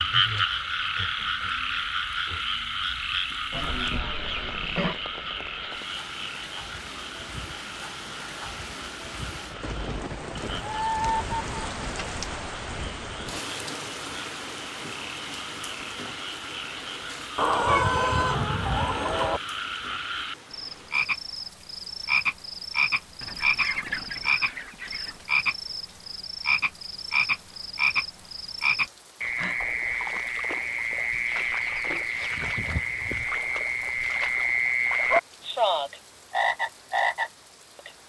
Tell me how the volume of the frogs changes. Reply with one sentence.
The volume of the frogs goes down, then up.